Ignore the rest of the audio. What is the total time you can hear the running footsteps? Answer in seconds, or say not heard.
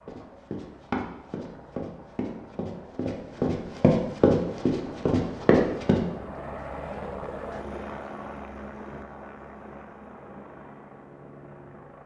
6 s.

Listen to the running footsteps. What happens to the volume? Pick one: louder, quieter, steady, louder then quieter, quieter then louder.
louder.